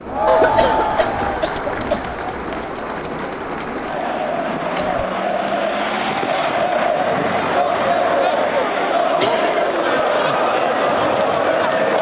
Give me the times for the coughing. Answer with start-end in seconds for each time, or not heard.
0.2-2.1, 4.8-5.2, 9.1-10.4.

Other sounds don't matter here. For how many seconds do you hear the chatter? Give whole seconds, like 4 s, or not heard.
12 s.